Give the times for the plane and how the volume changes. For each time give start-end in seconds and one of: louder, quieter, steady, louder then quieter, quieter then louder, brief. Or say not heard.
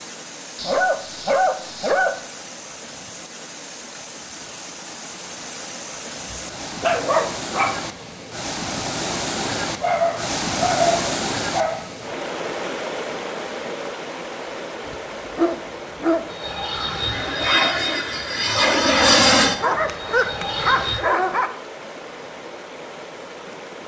16.3-21.0 louder then quieter.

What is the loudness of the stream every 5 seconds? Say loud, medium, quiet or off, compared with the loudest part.
medium, loud, loud, medium, medium.